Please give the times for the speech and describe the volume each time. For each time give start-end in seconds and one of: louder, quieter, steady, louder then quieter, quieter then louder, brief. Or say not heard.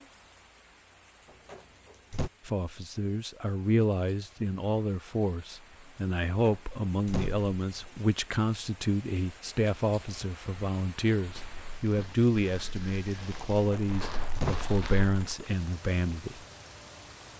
2.5-16.4 steady.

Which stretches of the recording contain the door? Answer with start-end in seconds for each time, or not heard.
1.4-2.3, 6.4-8.0, 13.7-14.7.